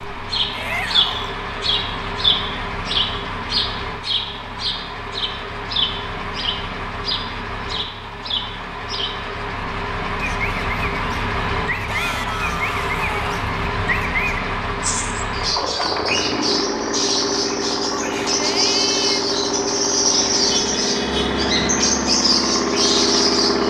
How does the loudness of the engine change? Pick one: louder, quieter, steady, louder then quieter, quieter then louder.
louder.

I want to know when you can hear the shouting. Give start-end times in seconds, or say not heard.
0.5-1.4, 11.8-13.3, 18.0-19.2.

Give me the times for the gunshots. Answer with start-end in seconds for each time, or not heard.
not heard.